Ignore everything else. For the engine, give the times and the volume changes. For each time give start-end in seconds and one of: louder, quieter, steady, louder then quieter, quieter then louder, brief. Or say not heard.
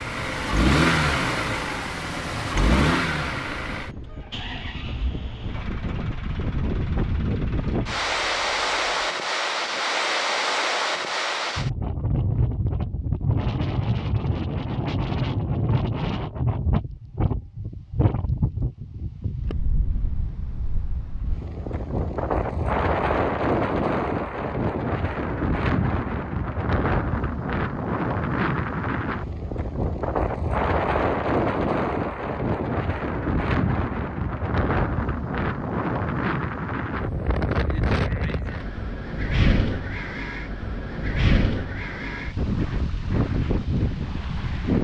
0.0-9.1 quieter.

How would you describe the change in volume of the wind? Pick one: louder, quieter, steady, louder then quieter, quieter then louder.
steady.